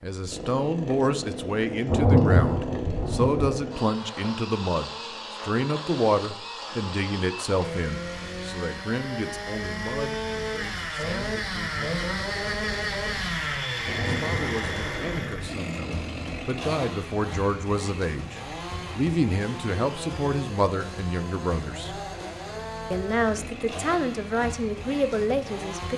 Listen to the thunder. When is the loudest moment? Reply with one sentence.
The loudest moment of the thunder is at 2 seconds.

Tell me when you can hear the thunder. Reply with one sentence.
You can hear the thunder from 1.9 to 3.5 s and from 13.8 to 15.6 s.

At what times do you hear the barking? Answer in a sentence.
You can't hear the barking here.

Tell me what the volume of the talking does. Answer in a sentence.
The loudness of the talking goes down, then up.